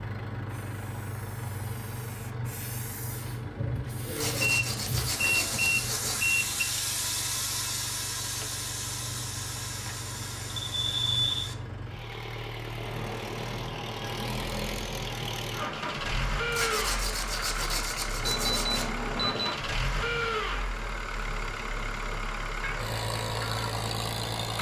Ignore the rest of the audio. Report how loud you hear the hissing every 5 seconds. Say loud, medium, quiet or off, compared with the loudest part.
loud, loud, medium, medium, medium.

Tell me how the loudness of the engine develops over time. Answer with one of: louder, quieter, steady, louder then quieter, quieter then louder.
louder.